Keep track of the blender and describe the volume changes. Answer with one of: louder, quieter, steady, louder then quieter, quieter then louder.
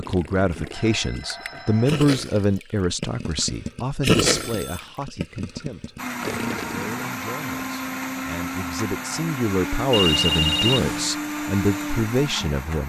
steady.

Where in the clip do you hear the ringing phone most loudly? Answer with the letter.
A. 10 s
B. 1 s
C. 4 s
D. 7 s
A.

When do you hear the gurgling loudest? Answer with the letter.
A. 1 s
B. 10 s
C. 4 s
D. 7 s
C.